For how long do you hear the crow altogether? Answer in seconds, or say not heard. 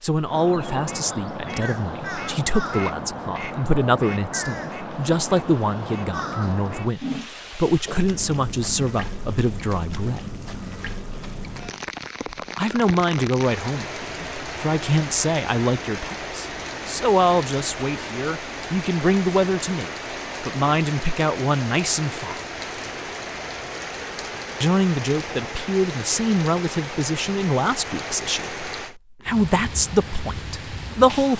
7 s.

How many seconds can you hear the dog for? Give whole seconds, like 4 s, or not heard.
not heard.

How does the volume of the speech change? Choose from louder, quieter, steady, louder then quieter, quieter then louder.
steady.